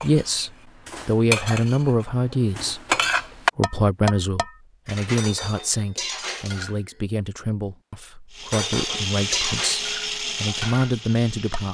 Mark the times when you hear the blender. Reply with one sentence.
You can hear the blender from 8.3 to 11.6 s.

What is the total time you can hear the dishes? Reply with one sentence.
You can hear the dishes for 10 seconds altogether.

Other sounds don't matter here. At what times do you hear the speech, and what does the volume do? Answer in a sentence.
The speech can be heard briefly from 0.0 to 2.8 s; and from 3.5 to 11.6 s, getting quieter then louder.